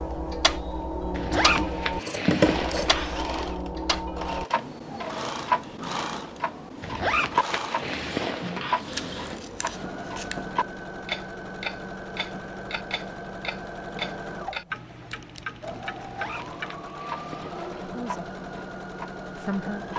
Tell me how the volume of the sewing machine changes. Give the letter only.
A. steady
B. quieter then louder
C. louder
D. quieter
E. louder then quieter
A.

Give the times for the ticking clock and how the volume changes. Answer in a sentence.
You can hear the ticking clock from 0.0 to 19.9 s, getting quieter.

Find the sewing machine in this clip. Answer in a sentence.
You can hear the sewing machine from 2.4 to 19.9 s.